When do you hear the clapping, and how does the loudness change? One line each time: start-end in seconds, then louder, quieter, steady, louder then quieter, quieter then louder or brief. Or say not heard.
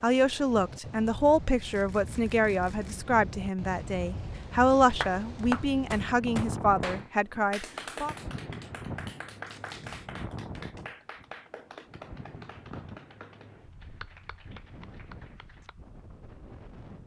5.0-15.8 quieter.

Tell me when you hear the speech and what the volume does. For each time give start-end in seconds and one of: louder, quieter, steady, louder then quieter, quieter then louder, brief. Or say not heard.
0.0-8.2 steady.